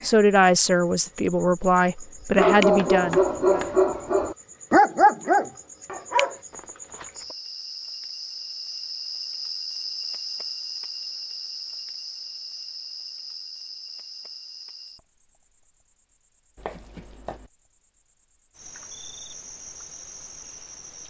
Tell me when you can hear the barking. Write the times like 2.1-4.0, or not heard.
2.4-7.3.